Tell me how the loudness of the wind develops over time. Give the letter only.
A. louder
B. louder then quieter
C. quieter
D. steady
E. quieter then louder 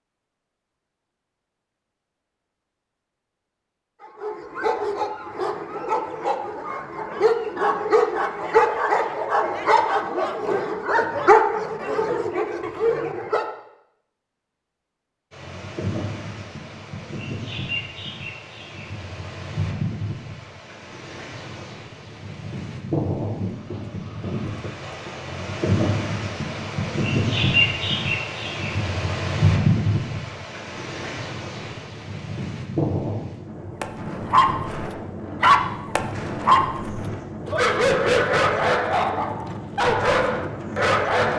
B.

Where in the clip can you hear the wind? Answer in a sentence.
The wind can be heard from 15.3 to 41.3 s.